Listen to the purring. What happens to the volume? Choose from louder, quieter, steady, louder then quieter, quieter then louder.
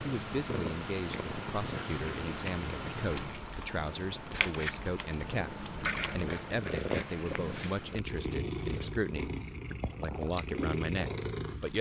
steady.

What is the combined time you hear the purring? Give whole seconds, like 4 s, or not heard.
12 s.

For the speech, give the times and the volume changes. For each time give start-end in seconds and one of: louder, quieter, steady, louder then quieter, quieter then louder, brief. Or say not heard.
0.0-11.7 steady.